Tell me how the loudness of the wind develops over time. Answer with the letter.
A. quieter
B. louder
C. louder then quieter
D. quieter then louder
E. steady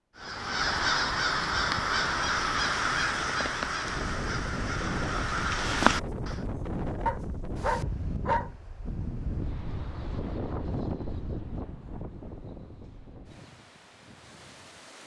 A.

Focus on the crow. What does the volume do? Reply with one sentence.
The loudness of the crow goes down, then up.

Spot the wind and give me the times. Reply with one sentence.
You can hear the wind from 3.8 to 15.0 s.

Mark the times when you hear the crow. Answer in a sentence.
The crow can be heard from 0.1 to 6.5 s.